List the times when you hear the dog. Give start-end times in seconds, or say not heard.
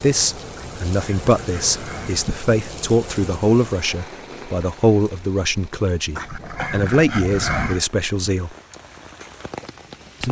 0.6-2.4, 6.2-7.8.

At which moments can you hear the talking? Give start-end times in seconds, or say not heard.
0.0-8.5.